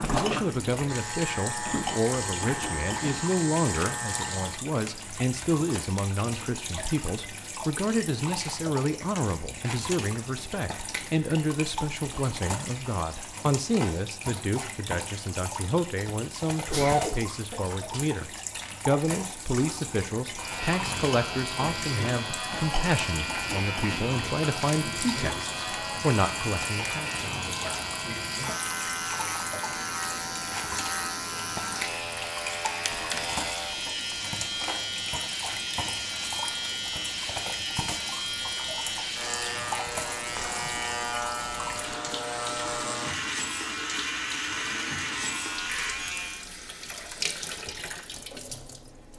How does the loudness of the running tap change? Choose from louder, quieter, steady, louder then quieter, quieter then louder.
steady.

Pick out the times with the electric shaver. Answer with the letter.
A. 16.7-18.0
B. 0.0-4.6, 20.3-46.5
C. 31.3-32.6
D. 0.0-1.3
B.